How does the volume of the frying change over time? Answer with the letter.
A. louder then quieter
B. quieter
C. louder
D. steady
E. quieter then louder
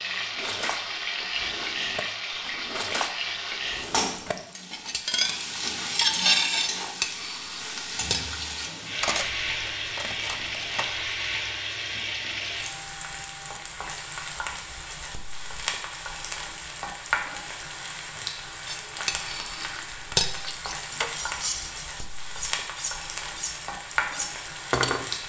D.